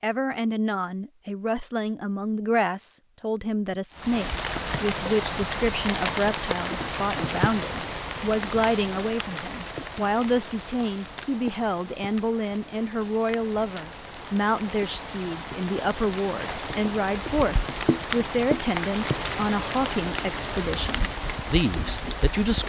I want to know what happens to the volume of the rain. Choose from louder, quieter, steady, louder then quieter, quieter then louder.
quieter then louder.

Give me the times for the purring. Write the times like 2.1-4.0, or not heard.
not heard.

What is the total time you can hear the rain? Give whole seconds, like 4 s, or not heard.
19 s.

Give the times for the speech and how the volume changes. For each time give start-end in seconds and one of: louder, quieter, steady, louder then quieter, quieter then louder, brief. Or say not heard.
0.0-22.6 steady.